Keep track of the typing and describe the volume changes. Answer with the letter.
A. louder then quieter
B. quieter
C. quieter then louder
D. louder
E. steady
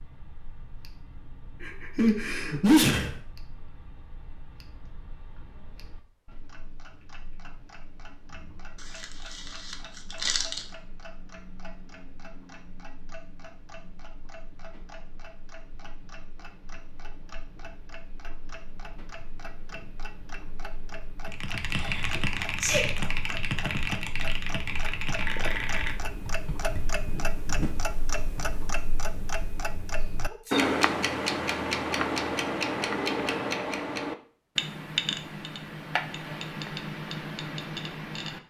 B.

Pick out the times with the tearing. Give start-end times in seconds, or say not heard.
8.8-10.7.